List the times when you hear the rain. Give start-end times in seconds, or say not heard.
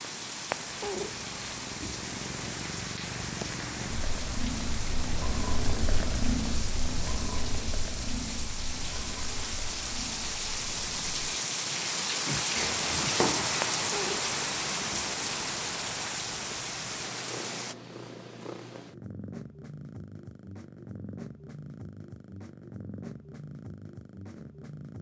0.0-17.8.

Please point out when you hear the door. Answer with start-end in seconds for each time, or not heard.
12.6-13.6.